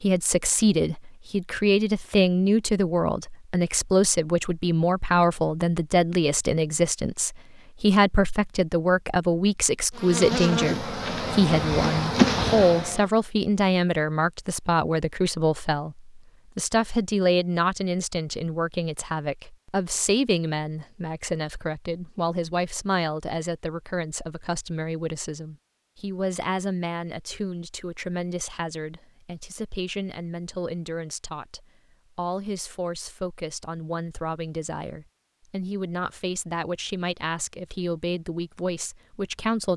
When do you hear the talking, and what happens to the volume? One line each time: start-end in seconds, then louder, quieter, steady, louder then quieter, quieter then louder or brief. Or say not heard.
0.0-39.7 quieter.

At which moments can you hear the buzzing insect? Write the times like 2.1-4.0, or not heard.
9.9-13.1.